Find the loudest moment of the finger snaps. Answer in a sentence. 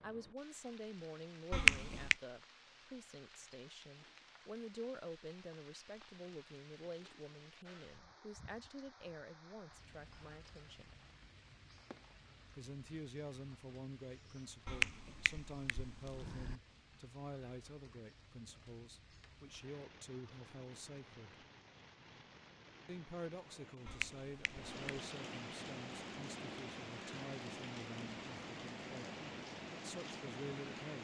The volume of the finger snaps peaks at 2 seconds.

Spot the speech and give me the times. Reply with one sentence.
The speech can be heard from 0.0 to 10.9 s, from 12.6 to 21.4 s and from 22.9 to 31.0 s.